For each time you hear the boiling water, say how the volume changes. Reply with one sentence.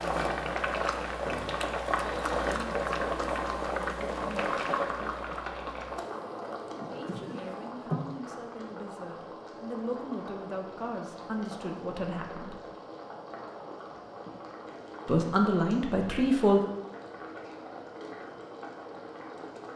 You can hear the boiling water from 0.0 to 19.7 s, getting quieter.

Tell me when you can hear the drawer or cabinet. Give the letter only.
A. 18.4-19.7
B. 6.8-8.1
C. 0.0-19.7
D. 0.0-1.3
B.